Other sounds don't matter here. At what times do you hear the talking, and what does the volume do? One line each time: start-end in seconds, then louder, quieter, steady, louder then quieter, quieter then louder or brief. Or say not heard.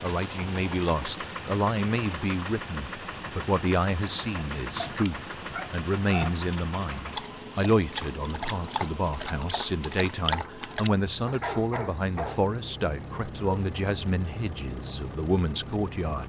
0.0-16.2 steady.